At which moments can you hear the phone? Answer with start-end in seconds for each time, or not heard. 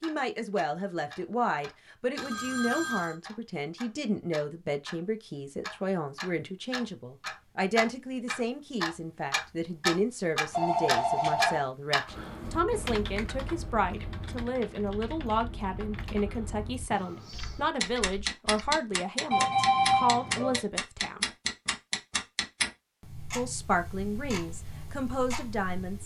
2.1-3.1, 10.5-11.7, 19.3-20.6.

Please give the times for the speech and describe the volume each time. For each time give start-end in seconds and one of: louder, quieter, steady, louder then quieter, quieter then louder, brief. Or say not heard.
0.0-21.2 steady
23.4-26.0 brief.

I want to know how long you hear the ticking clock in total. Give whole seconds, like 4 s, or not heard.
26 s.